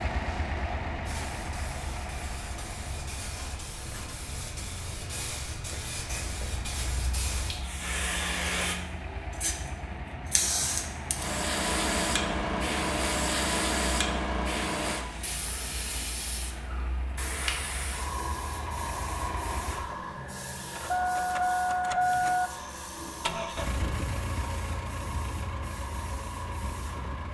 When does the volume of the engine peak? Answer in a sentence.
The loudest moment of the engine is at 22 seconds.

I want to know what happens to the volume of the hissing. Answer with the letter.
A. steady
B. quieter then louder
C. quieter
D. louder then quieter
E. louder
D.